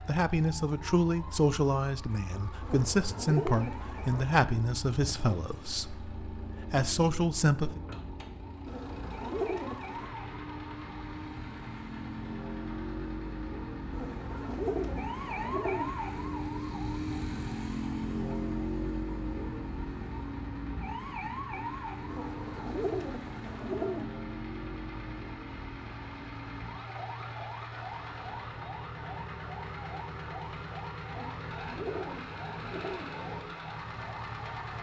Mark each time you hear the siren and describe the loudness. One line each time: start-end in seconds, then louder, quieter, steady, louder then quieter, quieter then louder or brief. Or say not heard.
0.0-34.7 louder then quieter.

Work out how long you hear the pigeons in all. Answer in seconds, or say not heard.
9 s.